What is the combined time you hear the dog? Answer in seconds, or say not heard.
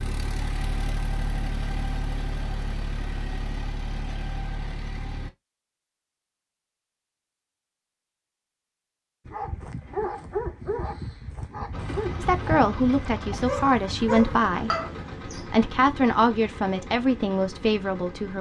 6 s.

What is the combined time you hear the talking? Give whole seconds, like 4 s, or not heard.
5 s.